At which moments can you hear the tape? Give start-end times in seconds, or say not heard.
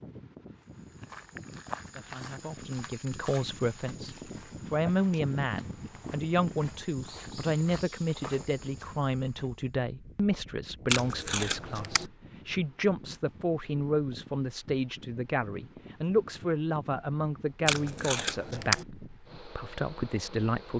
4.0-5.2, 10.9-12.1, 17.6-18.9.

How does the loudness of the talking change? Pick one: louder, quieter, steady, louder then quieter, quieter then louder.
steady.